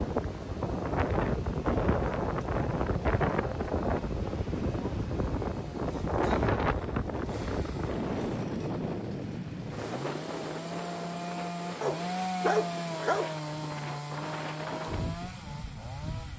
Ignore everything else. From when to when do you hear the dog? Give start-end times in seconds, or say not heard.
11.8-13.3.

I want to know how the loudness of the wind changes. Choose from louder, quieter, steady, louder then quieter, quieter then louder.
quieter.